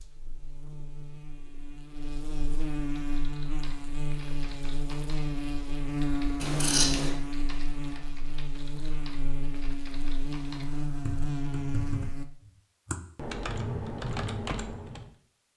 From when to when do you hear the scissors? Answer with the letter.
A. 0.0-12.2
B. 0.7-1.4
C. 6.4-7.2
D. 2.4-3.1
C.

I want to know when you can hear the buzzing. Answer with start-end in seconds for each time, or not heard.
0.0-12.2.